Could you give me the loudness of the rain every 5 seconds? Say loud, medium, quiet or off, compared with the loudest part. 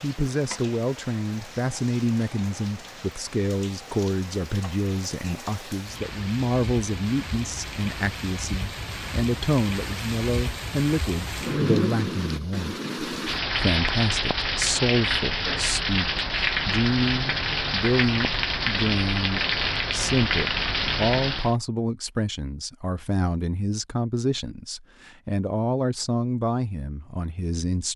quiet, medium, loud, loud, loud, off.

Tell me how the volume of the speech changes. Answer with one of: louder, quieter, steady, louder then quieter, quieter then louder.
steady.